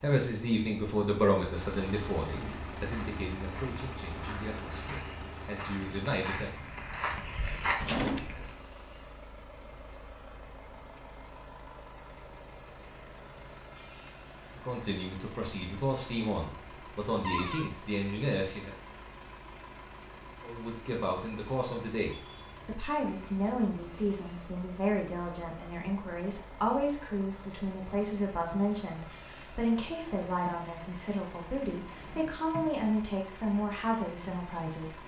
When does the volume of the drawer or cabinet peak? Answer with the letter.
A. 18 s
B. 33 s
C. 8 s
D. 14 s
C.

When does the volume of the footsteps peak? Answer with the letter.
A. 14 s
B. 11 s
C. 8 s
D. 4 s
C.